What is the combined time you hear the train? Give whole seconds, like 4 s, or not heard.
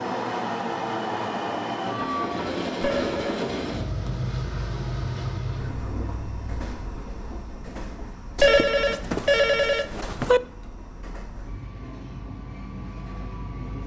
14 s.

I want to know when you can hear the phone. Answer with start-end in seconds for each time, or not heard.
2.8-3.4, 8.3-10.4.